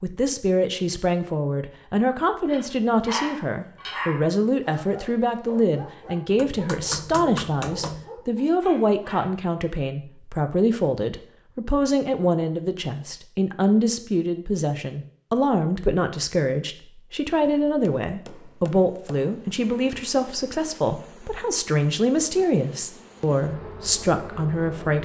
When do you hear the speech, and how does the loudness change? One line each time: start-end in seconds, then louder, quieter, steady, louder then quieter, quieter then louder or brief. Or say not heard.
0.0-24.9 steady.